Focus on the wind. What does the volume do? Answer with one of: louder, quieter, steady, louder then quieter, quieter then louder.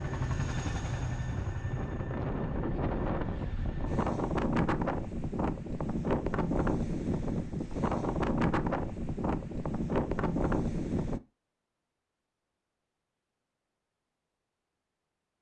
louder.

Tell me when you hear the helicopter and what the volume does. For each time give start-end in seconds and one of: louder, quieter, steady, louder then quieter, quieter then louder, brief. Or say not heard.
0.0-4.0 quieter.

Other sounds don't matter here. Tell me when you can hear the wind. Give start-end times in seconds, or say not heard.
0.0-11.2.